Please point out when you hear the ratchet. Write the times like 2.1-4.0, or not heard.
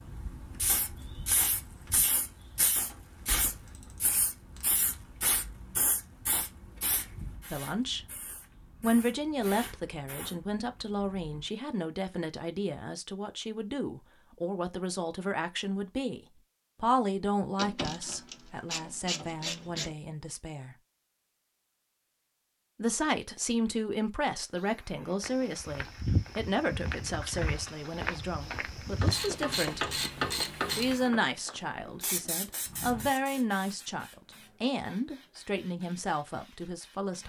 3.6-4.8, 17.6-19.9, 28.9-31.0.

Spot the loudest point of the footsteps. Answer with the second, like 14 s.
26 s.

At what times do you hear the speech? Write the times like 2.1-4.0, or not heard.
7.5-8.1, 8.8-16.2, 16.8-20.8, 22.8-30.0, 30.6-37.2.